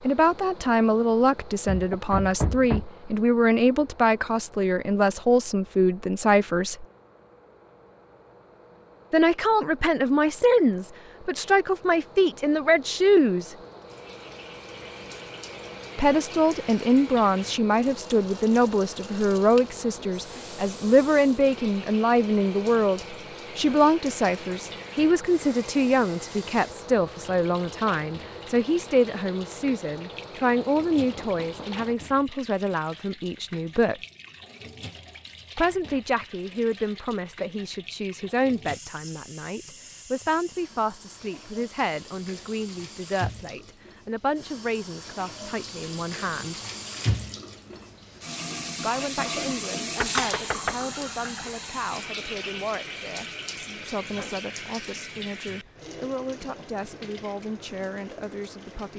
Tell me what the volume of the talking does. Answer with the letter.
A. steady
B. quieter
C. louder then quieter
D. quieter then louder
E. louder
B.